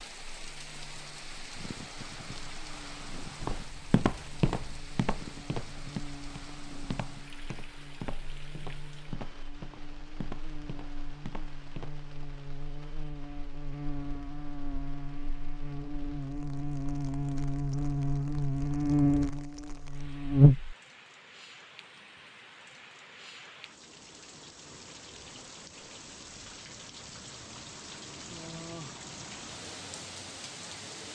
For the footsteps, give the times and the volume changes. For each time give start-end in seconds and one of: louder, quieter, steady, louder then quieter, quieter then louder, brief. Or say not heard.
3.4-11.9 quieter.